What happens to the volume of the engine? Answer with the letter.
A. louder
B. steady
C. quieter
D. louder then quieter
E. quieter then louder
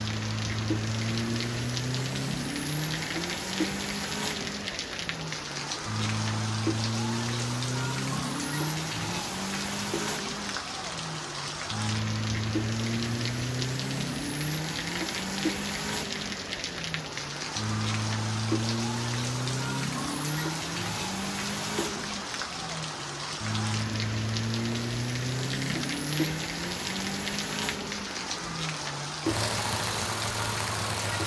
B.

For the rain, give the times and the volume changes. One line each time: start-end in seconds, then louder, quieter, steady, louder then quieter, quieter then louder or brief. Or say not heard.
0.0-31.2 steady.